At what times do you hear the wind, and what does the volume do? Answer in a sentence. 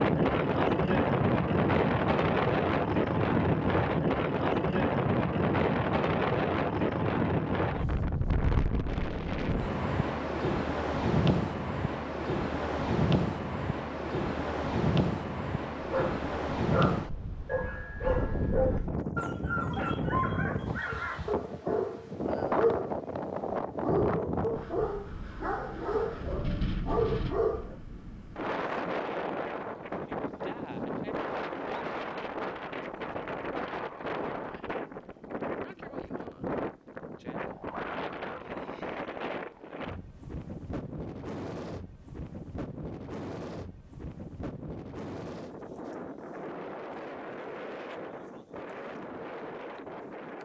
You can hear the wind from 0.0 to 50.3 s, getting quieter.